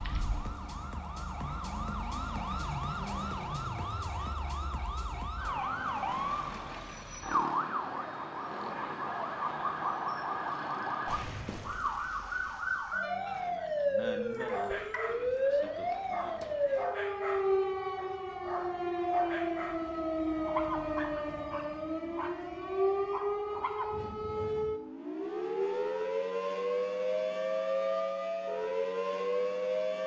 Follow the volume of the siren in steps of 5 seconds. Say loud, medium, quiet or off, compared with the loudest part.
medium, loud, loud, loud, loud, loud.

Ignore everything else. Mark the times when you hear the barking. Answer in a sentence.
You can hear the barking from 14.4 to 23.9 s.